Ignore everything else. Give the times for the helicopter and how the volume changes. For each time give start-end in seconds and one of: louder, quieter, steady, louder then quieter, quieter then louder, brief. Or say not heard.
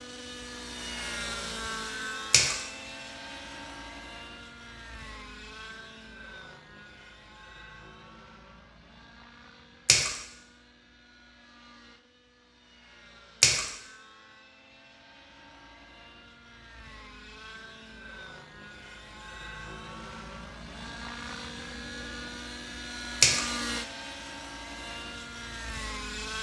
0.0-26.3 quieter then louder.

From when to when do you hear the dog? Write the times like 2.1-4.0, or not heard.
not heard.